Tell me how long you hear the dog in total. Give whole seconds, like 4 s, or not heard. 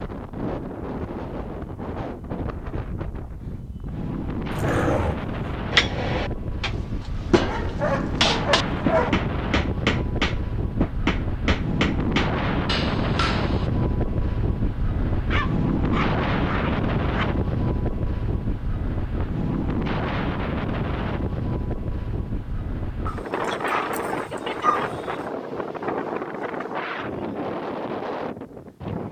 7 s.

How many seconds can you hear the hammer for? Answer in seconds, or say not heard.
8 s.